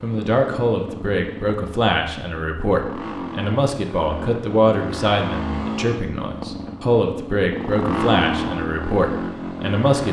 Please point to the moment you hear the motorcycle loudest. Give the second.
8 s.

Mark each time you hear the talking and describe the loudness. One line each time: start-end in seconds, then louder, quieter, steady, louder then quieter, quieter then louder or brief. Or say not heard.
0.0-10.0 steady.